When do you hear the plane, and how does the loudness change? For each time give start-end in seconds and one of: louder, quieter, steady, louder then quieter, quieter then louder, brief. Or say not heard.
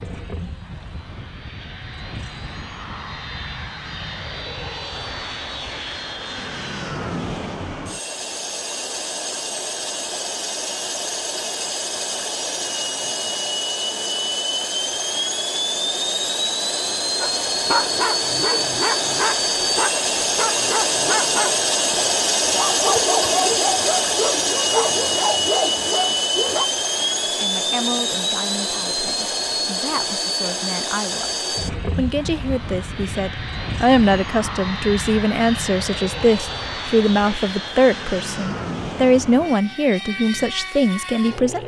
0.0-41.6 louder then quieter.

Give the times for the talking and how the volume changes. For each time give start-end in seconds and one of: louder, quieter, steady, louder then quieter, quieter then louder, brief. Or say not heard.
27.2-41.6 louder.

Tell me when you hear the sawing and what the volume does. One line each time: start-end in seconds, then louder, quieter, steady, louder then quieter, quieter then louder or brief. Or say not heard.
not heard.